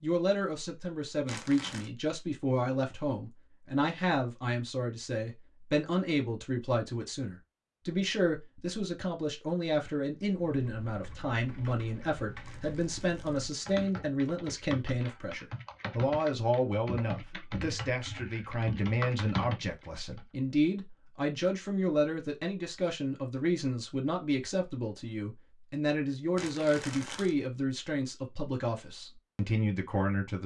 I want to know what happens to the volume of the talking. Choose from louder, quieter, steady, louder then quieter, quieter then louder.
steady.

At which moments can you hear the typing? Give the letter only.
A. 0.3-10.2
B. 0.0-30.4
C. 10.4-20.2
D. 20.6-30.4
C.